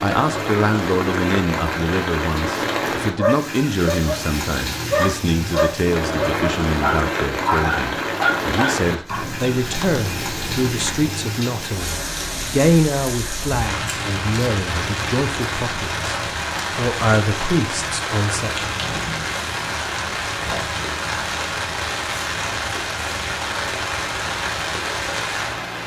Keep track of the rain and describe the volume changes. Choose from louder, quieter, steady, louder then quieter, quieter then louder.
steady.